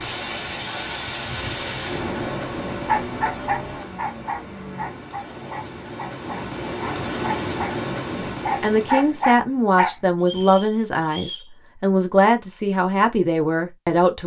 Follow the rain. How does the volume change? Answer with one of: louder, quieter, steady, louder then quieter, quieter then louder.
quieter then louder.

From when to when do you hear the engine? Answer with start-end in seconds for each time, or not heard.
0.1-5.1.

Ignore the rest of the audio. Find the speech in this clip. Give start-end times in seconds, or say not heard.
8.6-14.2.